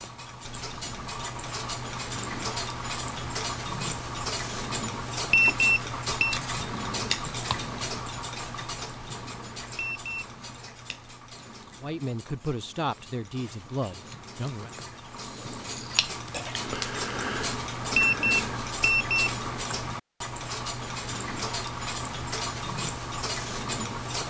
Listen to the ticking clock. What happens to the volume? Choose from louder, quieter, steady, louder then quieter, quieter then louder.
quieter then louder.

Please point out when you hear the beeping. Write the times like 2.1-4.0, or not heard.
5.3-6.4, 9.8-10.2, 17.9-19.4.